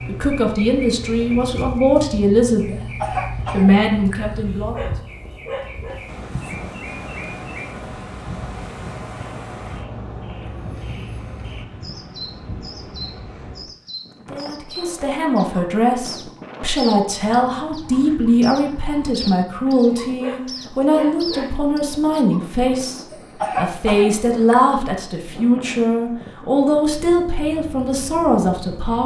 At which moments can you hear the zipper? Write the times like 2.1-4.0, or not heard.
not heard.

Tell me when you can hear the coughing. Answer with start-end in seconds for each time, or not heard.
2.7-4.4, 23.1-24.8.